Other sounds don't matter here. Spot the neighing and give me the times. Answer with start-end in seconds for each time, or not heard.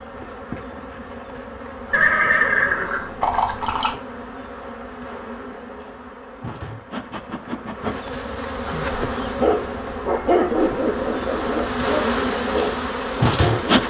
1.9-4.0.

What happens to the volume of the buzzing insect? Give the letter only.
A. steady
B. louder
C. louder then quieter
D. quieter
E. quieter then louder
B.